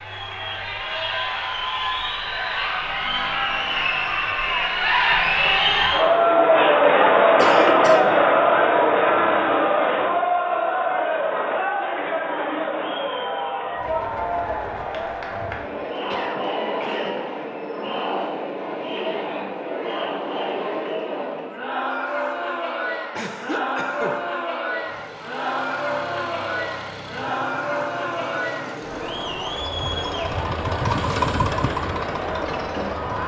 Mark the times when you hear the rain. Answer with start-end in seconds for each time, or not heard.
not heard.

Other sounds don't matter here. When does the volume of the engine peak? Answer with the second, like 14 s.
31 s.